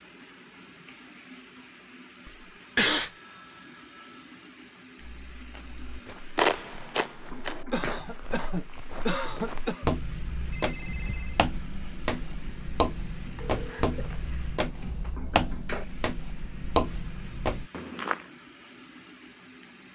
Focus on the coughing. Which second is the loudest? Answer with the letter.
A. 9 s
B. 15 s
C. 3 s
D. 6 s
C.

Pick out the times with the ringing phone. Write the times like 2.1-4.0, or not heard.
3.0-4.3, 10.5-11.4, 13.3-15.2.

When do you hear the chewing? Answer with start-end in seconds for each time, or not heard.
5.0-8.3.